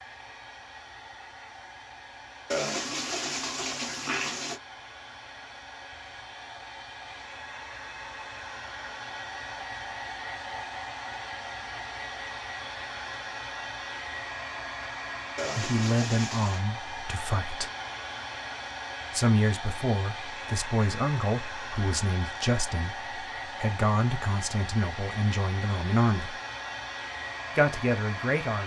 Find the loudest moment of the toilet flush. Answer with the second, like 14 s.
3 s.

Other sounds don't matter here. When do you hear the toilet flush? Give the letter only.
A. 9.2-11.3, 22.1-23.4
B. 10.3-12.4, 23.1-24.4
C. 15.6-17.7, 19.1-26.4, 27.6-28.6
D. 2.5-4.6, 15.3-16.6
D.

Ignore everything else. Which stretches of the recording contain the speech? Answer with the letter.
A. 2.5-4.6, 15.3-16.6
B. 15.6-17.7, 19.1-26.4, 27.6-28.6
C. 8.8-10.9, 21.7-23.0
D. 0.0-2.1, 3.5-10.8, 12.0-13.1
B.